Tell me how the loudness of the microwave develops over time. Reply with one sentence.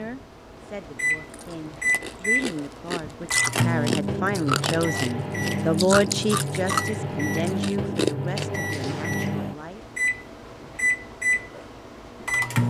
The volume of the microwave stays about the same.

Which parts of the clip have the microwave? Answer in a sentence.
You can hear the microwave from 0.0 to 12.6 s.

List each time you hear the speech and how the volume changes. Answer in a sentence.
You can hear the speech from 0.0 to 9.8 s, getting louder then quieter.